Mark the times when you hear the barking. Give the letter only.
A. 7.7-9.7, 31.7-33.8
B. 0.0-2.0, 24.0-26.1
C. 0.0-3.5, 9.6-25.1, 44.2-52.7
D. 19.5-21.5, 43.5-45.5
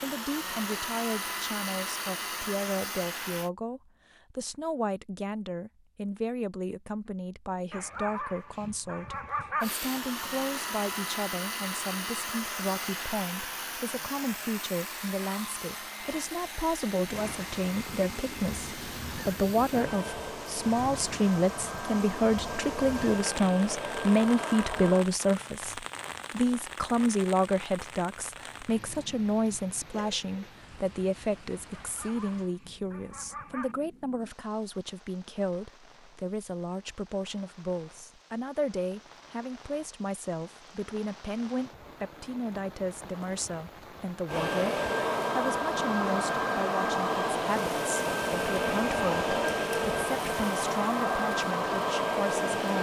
A.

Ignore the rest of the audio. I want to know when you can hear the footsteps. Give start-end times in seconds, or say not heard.
not heard.